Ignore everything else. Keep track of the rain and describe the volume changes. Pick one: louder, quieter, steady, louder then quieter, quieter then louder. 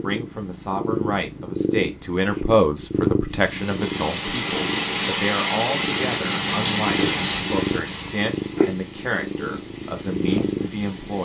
quieter.